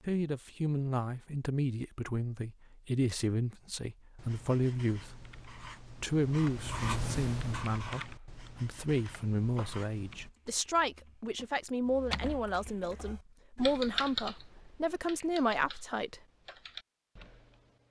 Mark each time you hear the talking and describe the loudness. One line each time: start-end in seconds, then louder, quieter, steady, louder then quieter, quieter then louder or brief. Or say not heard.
0.1-16.2 steady.